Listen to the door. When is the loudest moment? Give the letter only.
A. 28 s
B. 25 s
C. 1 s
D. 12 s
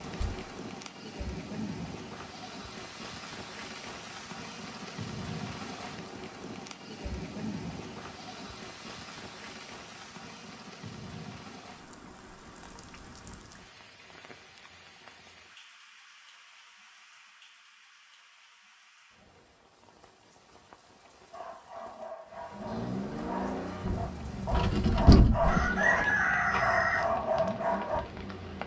B.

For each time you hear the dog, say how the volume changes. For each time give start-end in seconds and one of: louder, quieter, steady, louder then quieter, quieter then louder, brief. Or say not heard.
21.3-28.1 louder.